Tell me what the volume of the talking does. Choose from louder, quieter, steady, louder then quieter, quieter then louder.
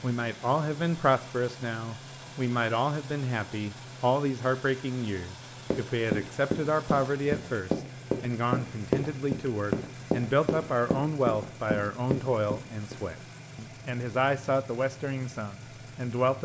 steady.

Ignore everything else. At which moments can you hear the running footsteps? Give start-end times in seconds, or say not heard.
5.7-12.9.